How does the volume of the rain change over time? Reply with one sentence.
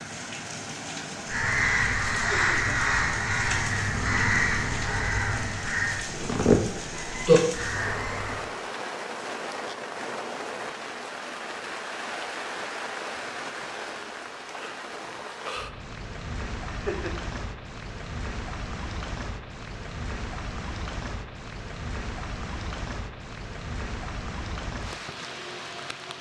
The volume of the rain stays about the same.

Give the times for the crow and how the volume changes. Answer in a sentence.
You can hear the crow from 1.2 to 8.4 s, at a steady volume.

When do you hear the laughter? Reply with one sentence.
You can hear the laughter from 2.3 to 3.0 s and from 16.6 to 17.2 s.